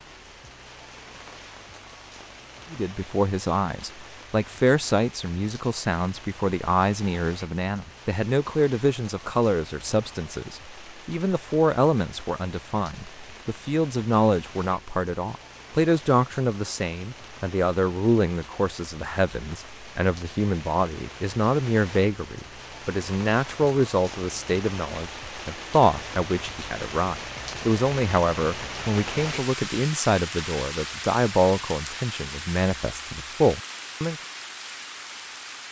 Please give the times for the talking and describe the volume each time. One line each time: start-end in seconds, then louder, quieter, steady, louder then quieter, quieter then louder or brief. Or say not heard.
2.7-34.1 steady.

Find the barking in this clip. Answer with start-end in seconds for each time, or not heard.
not heard.